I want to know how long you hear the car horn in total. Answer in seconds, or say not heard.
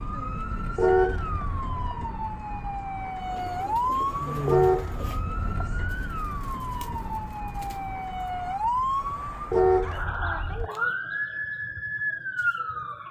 4 s.